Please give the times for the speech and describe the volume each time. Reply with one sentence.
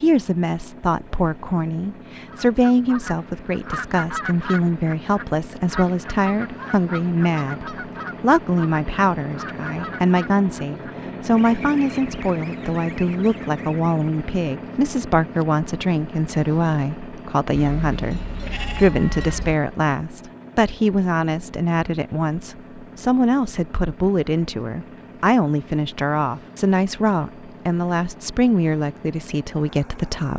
The speech can be heard from 0.0 to 30.3 s, at a steady volume.